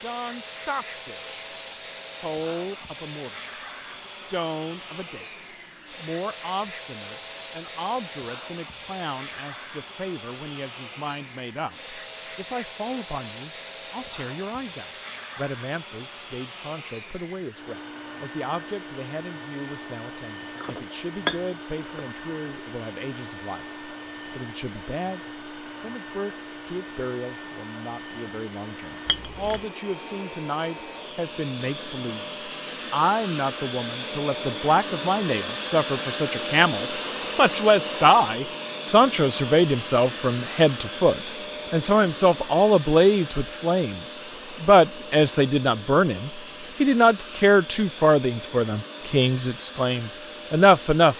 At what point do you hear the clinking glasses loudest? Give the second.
21 s.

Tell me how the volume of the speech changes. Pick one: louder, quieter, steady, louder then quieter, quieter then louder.
louder.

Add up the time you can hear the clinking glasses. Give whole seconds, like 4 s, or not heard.
2 s.